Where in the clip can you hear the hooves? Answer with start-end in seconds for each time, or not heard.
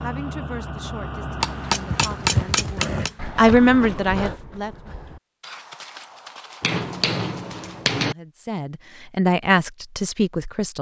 1.9-7.9.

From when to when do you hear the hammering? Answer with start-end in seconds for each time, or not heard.
1.4-3.1, 6.6-8.2.